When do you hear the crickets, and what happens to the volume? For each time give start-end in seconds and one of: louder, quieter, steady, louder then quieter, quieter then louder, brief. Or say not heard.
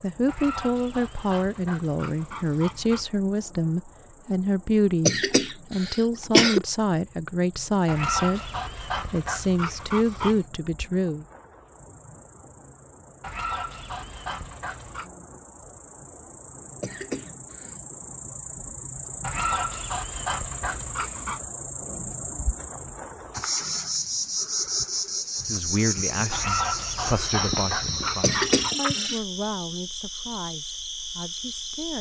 0.0-31.9 louder.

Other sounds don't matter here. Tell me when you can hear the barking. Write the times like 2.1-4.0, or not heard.
0.2-3.0, 7.8-10.4, 13.2-15.1, 19.2-21.4, 26.3-28.8.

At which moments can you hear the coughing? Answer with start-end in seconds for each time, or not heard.
5.0-6.7, 16.8-17.8, 28.2-29.2.